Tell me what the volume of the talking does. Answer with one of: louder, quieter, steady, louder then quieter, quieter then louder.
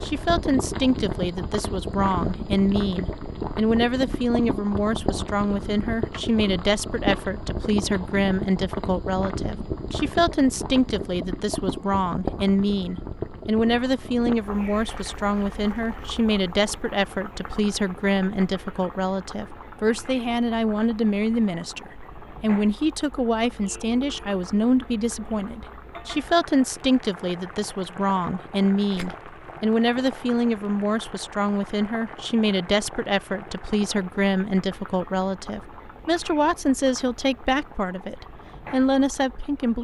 steady.